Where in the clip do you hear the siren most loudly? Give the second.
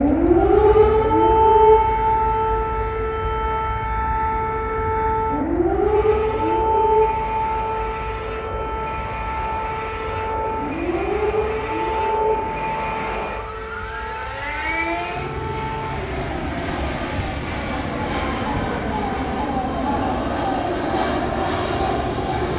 1 s.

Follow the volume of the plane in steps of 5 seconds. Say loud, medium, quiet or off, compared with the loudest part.
quiet, medium, medium, loud, loud.